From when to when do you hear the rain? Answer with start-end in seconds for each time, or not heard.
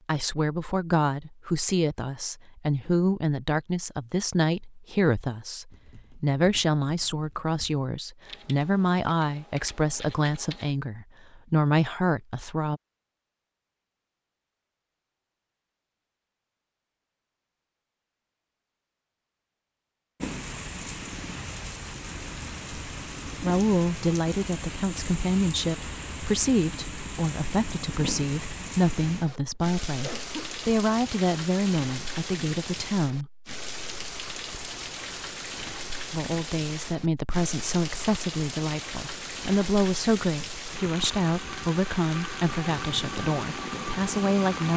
20.2-44.7.